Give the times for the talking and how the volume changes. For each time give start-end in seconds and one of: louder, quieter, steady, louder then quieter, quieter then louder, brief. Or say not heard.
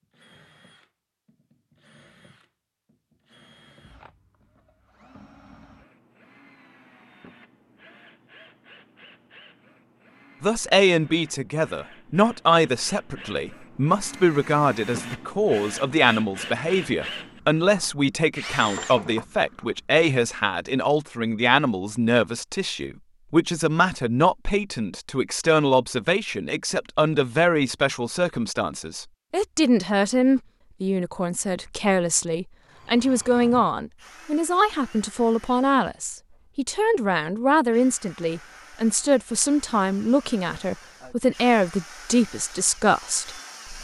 10.4-43.7 steady.